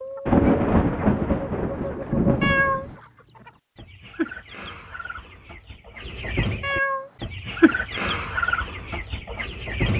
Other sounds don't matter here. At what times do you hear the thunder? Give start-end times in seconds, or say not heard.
0.2-3.0.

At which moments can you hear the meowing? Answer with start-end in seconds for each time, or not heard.
2.4-2.9, 6.6-7.1.